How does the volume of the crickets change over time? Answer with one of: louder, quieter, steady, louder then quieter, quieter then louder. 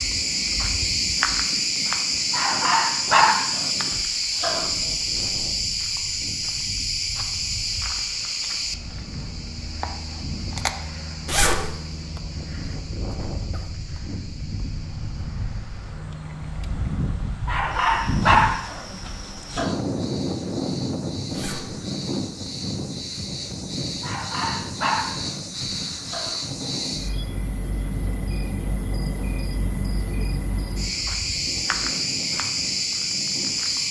quieter then louder.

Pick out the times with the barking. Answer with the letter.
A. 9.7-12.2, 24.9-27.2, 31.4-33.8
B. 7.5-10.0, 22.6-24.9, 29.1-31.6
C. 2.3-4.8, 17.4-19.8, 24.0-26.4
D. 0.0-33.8
C.